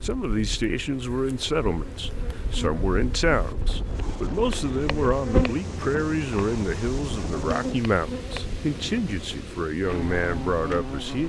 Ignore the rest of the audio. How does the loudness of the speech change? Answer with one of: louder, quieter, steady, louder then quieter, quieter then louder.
steady.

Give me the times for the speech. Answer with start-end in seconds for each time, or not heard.
0.0-11.2.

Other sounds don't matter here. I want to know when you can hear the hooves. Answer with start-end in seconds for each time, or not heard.
not heard.